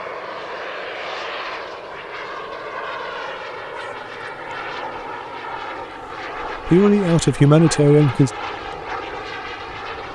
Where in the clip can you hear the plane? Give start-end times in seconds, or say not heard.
0.0-10.0.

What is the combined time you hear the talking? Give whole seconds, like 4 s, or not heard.
2 s.